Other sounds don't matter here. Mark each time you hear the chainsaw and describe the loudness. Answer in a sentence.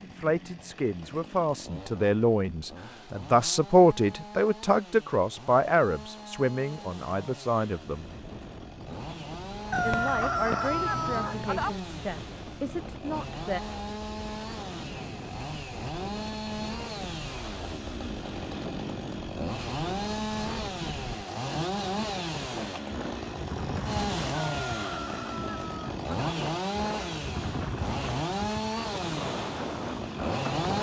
You can hear the chainsaw from 0.0 to 30.7 s, getting louder.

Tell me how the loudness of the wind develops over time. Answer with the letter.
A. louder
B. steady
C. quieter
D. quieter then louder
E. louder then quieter
A.